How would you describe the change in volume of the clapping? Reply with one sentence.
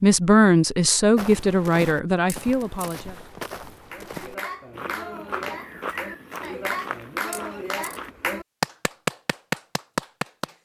The loudness of the clapping goes up.